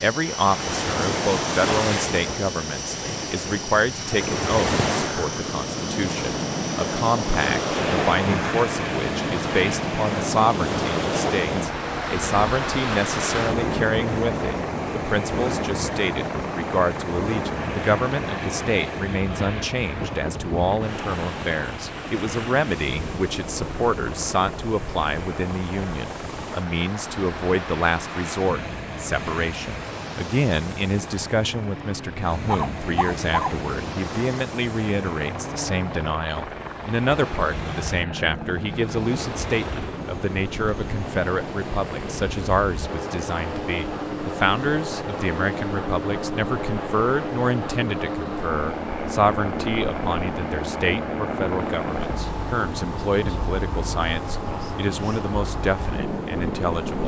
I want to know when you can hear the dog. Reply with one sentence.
The dog can be heard from 32.5 to 33.6 s.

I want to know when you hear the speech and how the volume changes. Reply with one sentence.
The speech can be heard from 0.0 to 57.0 s, at a steady volume.